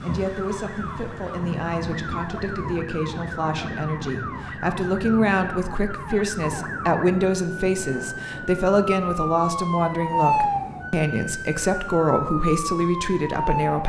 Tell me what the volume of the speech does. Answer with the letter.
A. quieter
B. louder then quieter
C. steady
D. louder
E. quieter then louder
D.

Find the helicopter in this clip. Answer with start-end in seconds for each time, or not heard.
not heard.